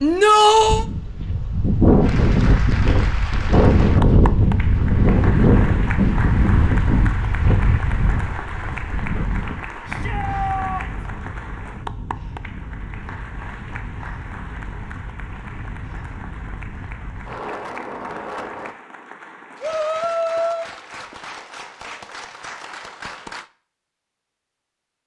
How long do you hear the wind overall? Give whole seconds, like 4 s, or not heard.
19 s.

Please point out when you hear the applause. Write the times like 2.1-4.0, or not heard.
2.0-23.5.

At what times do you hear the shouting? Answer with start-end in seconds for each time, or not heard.
0.0-0.8, 9.8-11.1, 19.6-20.6.